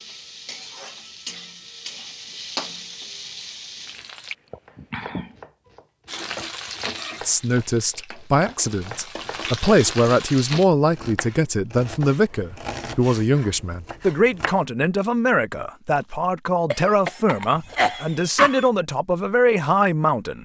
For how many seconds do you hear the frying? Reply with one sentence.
You can hear the frying for 9 seconds altogether.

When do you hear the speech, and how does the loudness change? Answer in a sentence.
You can hear the speech from 7.2 to 20.3 s, at a steady volume.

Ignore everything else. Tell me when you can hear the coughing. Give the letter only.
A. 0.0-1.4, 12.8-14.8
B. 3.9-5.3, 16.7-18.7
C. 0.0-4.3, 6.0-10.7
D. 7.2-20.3
B.